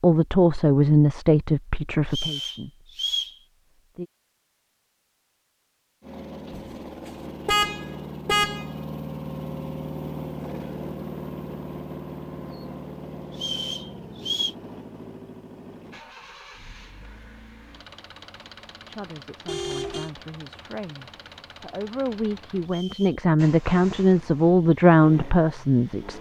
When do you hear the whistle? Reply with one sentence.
The whistle can be heard from 2.0 to 3.4 s, from 13.3 to 14.6 s and from 22.6 to 23.2 s.